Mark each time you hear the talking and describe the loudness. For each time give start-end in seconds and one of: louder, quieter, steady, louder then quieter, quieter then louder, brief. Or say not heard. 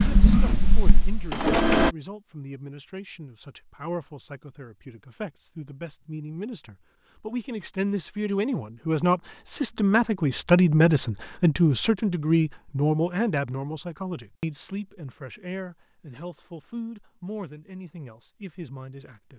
0.0-19.3 louder then quieter.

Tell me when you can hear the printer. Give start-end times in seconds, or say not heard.
0.0-1.9.